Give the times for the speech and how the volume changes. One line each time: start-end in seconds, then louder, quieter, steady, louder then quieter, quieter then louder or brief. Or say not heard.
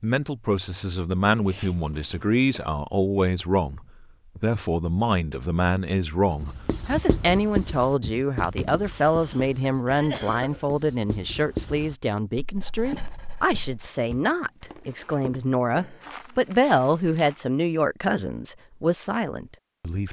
0.0-20.0 steady.